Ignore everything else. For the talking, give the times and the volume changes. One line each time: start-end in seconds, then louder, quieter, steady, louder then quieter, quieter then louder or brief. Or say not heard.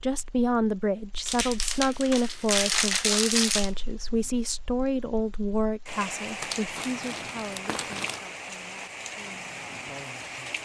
0.0-10.6 quieter.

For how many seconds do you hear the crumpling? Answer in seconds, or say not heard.
4 s.